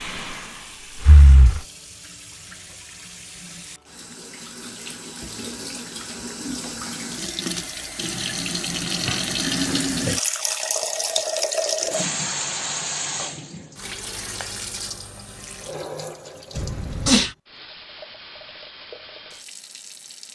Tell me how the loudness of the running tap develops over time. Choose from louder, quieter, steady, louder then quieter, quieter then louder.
louder then quieter.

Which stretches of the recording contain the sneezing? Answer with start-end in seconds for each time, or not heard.
16.6-17.4.